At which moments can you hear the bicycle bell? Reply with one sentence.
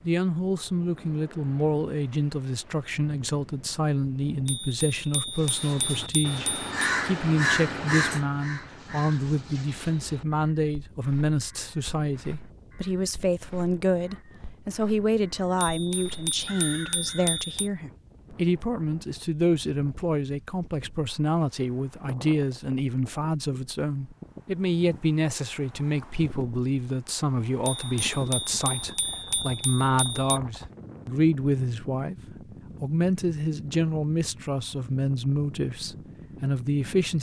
The bicycle bell can be heard from 4.5 to 6.7 s, from 15.6 to 17.7 s and from 27.6 to 30.4 s.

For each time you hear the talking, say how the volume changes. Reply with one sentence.
The talking can be heard from 0.0 to 32.1 s, at a steady volume; and from 32.8 to 37.1 s, at a steady volume.